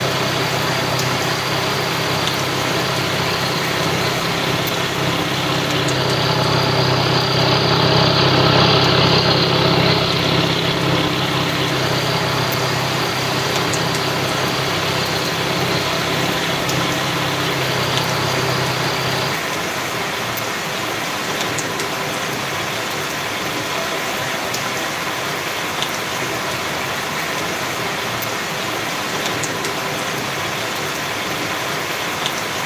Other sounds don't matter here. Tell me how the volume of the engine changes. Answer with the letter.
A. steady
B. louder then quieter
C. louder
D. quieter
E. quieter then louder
B.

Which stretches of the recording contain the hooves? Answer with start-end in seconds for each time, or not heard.
not heard.